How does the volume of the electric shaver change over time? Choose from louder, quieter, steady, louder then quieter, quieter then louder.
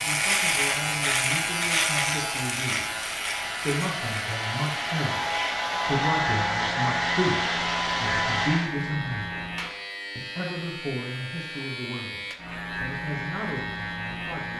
quieter.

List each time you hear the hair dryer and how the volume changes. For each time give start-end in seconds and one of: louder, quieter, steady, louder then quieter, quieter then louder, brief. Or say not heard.
0.0-8.7 louder.